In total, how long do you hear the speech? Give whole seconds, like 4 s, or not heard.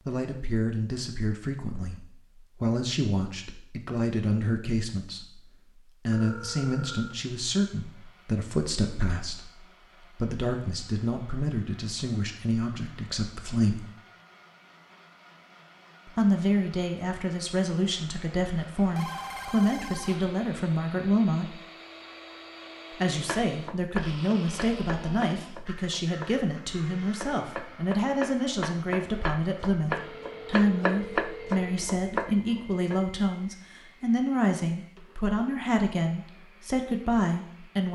34 s.